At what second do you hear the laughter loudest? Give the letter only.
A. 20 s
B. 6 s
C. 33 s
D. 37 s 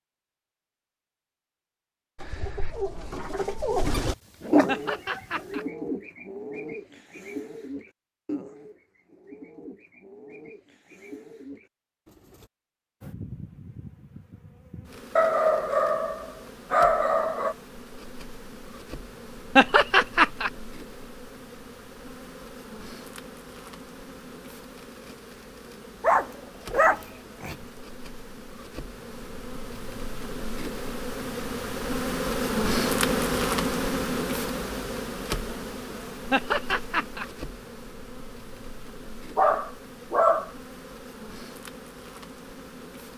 A.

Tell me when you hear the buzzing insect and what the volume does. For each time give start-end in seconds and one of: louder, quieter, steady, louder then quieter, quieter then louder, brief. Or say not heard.
13.0-43.1 louder then quieter.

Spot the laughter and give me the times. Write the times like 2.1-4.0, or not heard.
4.7-5.7, 19.6-20.5, 36.3-37.2.